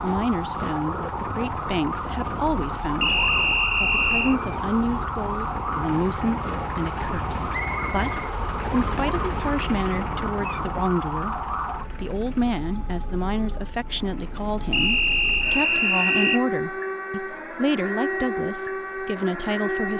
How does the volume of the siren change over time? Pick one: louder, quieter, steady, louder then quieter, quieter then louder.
quieter then louder.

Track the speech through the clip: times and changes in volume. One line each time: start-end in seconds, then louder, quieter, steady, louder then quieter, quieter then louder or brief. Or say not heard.
0.0-19.9 steady.